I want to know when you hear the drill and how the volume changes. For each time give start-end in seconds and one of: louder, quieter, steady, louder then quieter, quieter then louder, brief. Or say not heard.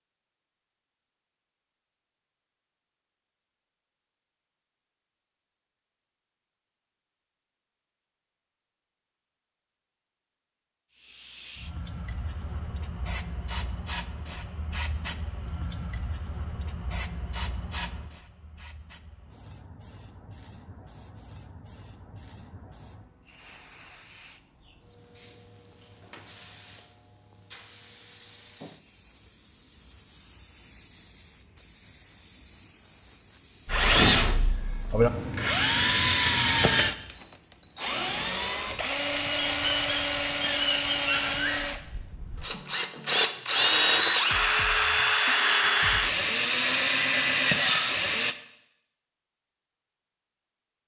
33.6-48.4 quieter then louder.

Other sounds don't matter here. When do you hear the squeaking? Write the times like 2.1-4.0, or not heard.
39.4-41.6.